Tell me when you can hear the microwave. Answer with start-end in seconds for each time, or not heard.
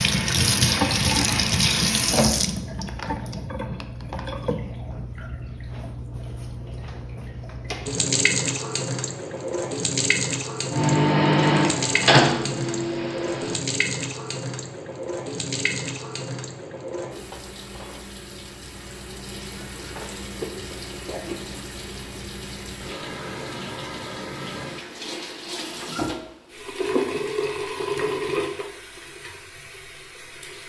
10.7-13.6.